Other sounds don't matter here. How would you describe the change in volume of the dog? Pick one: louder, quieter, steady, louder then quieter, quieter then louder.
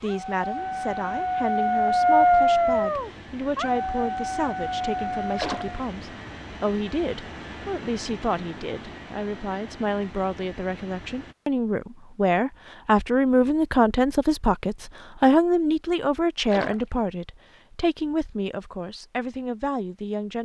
louder then quieter.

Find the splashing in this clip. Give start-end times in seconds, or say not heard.
5.3-5.8, 16.5-16.9.